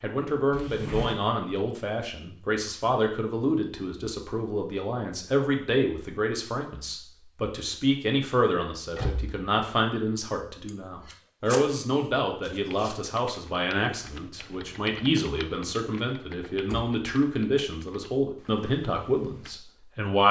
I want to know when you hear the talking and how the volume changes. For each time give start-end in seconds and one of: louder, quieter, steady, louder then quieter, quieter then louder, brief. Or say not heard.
0.0-20.2 steady.